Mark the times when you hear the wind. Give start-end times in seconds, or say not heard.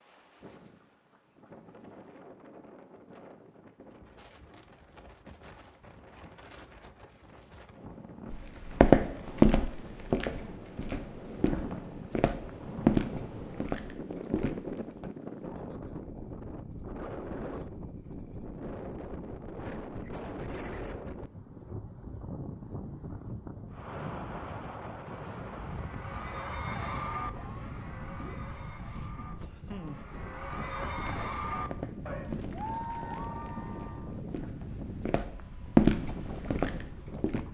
0.0-37.4.